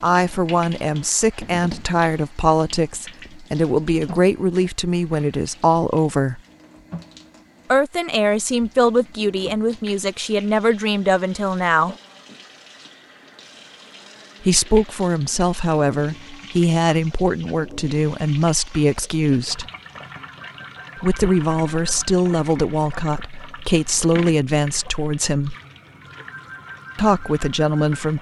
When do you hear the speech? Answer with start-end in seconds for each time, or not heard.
0.0-6.4, 7.7-11.9, 14.4-19.6, 21.0-25.6, 26.9-28.1.